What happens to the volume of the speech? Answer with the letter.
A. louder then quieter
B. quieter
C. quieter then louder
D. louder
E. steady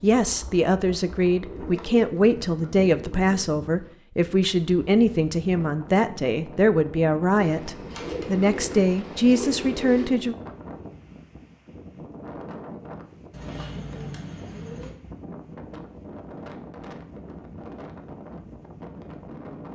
E.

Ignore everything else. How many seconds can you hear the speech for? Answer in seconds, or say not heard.
10 s.